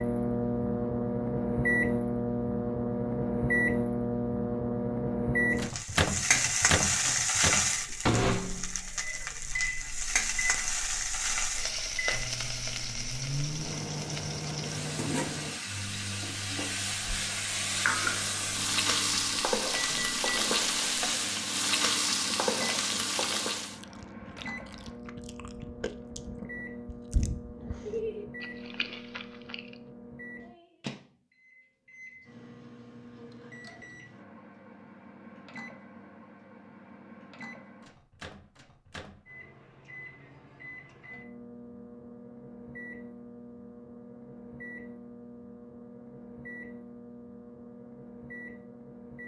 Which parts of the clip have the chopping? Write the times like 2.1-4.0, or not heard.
not heard.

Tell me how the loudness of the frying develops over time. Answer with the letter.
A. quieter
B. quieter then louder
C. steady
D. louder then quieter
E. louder
B.